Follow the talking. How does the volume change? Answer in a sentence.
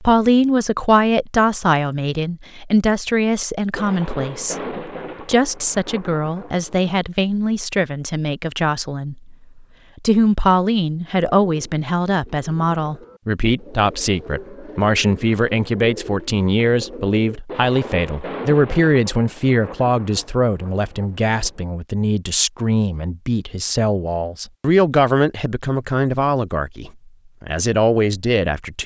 The volume of the talking stays about the same.